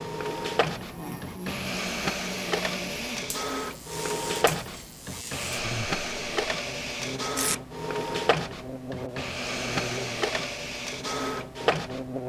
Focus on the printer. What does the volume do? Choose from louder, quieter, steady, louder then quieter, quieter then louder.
steady.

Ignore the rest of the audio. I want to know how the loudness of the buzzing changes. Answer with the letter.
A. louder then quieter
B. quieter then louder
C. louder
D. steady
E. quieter
D.